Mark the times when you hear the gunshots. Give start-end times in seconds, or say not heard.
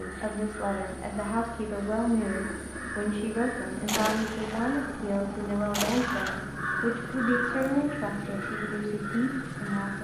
3.9-6.5.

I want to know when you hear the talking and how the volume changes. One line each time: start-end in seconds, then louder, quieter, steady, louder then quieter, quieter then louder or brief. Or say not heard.
0.0-10.0 steady.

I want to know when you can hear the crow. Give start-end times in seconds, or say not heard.
0.0-10.0.